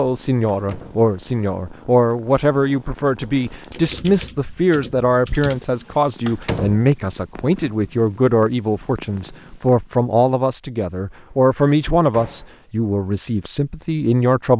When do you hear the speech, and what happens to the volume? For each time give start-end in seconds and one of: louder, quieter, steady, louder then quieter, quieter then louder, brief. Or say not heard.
0.0-14.5 steady.